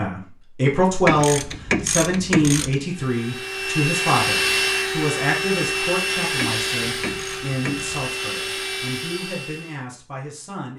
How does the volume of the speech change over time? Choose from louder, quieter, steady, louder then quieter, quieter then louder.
quieter.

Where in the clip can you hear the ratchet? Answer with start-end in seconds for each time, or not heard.
1.1-2.8, 6.3-8.1.